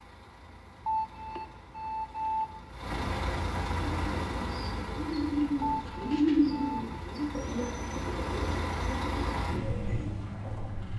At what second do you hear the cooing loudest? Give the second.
6 s.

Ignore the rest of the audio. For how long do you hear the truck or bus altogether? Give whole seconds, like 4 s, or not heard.
11 s.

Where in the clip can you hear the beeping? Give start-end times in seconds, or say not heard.
0.8-2.6, 5.6-6.8.